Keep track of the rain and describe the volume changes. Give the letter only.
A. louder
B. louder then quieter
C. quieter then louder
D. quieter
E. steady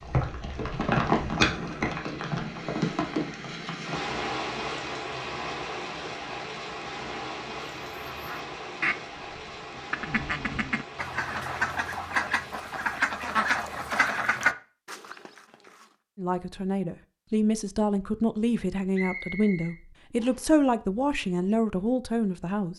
D.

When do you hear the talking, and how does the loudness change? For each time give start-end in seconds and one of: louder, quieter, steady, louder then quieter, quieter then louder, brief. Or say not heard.
16.1-22.7 steady.